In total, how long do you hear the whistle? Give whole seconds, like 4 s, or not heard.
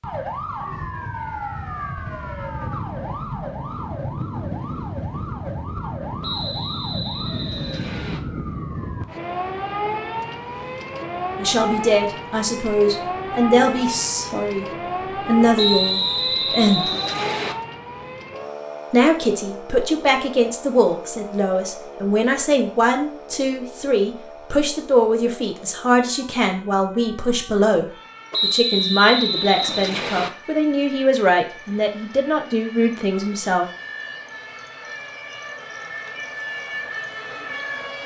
6 s.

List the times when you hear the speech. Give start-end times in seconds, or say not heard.
11.3-14.7, 15.2-16.9, 18.9-33.6.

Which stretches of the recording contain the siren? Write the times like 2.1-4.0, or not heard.
0.0-38.0.